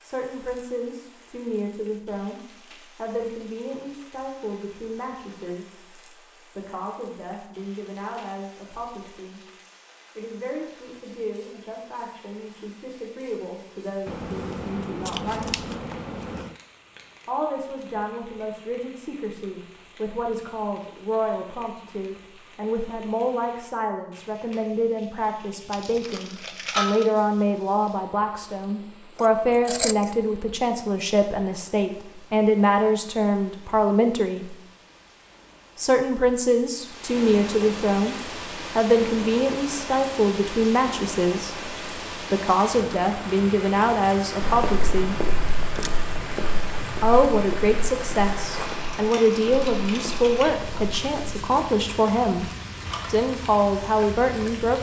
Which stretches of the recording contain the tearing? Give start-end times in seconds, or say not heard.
25.7-27.1.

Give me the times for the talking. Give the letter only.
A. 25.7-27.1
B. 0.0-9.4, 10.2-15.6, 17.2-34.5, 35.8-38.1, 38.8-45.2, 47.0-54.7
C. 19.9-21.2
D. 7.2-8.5
B.